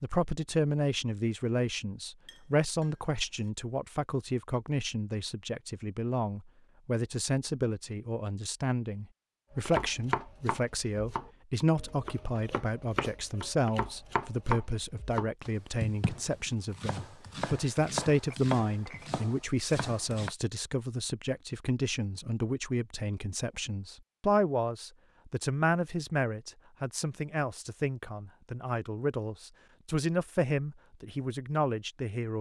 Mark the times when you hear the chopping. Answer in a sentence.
You can hear the chopping from 9.6 to 20.3 s.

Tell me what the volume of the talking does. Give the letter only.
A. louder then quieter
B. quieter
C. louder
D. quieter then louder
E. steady
E.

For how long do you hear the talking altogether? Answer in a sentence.
You can hear the talking for 32 seconds altogether.